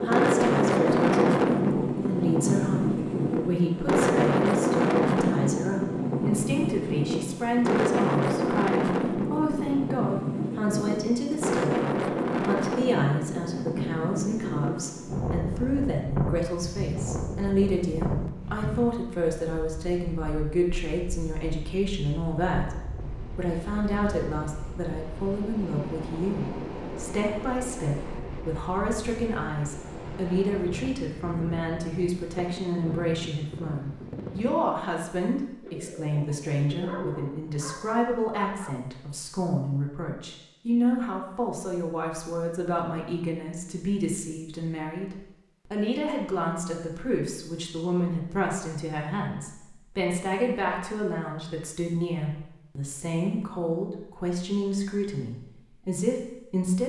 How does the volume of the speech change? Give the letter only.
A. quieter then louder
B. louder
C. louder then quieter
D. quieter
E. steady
E.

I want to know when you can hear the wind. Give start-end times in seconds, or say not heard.
0.0-34.5.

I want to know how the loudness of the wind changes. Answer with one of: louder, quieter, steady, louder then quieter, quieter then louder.
quieter.